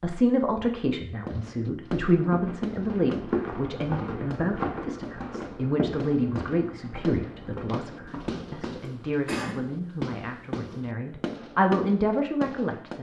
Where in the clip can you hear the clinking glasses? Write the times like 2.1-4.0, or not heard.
not heard.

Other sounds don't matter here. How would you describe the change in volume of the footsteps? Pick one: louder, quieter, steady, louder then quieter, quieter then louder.
quieter.